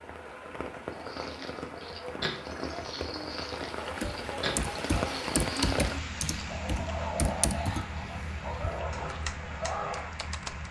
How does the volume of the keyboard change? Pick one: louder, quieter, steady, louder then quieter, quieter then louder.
quieter then louder.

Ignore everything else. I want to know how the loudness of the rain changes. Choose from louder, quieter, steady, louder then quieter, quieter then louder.
louder then quieter.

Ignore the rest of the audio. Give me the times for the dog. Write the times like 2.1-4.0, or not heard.
0.9-10.2.